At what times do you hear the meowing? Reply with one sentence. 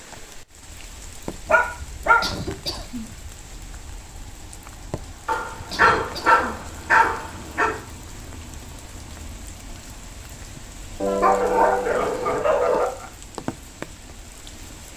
You can't hear the meowing here.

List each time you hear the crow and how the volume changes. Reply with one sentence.
You can't hear the crow here.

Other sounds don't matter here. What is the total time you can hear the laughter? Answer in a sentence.
You can hear the laughter for 3 seconds altogether.